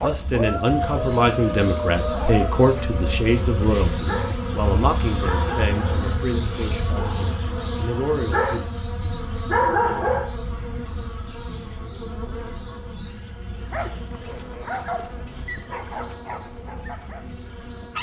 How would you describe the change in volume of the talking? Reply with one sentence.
The volume of the talking goes down.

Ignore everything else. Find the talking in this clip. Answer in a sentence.
The talking can be heard from 0.0 to 8.6 s.